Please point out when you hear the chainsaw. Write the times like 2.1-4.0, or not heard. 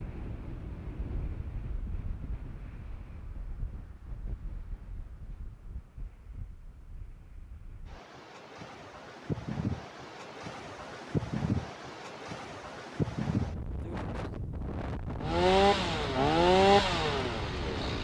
15.2-17.9.